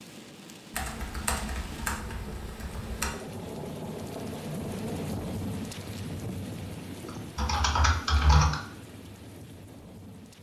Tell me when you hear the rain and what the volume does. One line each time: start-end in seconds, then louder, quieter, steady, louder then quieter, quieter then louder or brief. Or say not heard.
0.0-10.3 louder then quieter.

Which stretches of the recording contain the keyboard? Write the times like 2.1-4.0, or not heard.
0.7-3.1, 7.0-8.6.